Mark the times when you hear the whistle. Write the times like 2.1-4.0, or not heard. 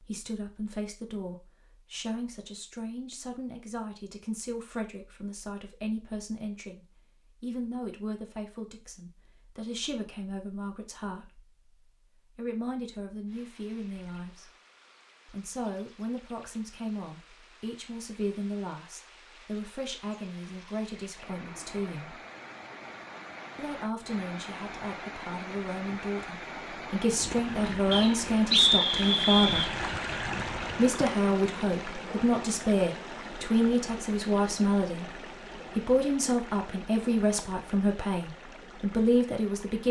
27.9-29.7.